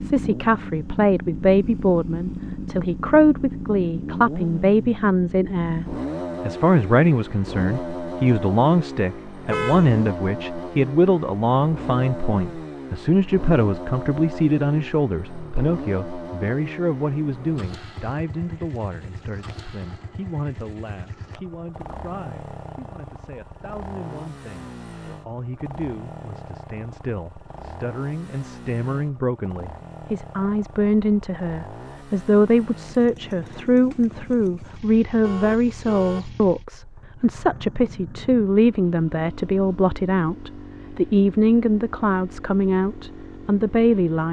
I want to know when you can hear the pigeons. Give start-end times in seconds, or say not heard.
not heard.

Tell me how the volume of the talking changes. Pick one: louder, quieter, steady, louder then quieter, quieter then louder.
quieter then louder.